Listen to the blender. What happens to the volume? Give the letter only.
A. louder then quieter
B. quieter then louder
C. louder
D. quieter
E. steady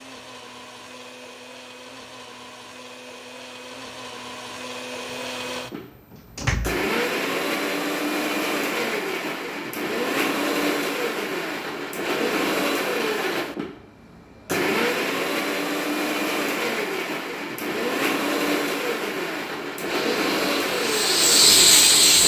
C.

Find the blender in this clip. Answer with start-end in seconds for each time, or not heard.
0.0-22.2.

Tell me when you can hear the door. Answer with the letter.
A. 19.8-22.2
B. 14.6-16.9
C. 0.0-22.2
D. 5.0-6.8
D.